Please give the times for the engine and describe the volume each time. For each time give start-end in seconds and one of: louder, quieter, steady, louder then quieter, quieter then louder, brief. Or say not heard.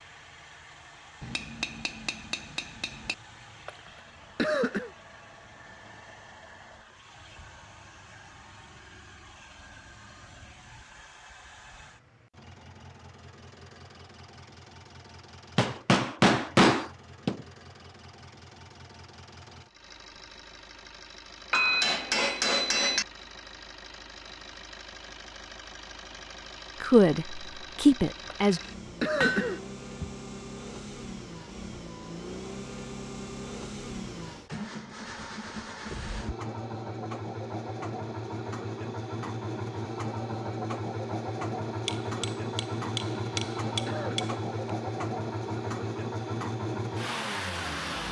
0.0-48.0 louder.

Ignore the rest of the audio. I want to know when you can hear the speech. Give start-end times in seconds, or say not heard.
26.8-28.6.